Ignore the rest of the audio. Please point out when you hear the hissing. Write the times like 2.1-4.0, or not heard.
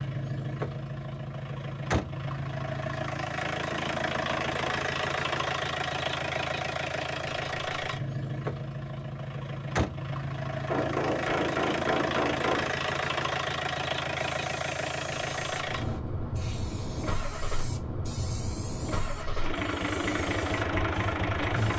14.3-21.7.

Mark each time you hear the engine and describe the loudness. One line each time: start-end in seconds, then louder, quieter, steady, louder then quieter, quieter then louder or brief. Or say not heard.
0.0-21.7 steady.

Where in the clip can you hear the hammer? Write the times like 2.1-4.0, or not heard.
10.7-12.7.